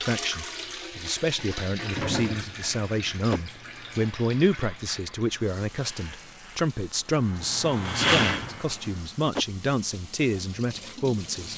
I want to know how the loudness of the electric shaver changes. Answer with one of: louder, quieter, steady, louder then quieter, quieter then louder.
louder.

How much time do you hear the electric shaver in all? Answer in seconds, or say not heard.
7 s.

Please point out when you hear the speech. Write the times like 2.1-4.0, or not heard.
0.0-11.5.